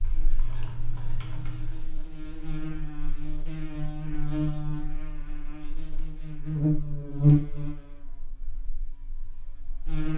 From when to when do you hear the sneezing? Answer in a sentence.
The sneezing can't be heard in this clip.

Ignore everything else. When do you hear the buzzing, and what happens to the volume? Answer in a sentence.
You can hear the buzzing from 0.0 to 10.1 s, getting louder then quieter.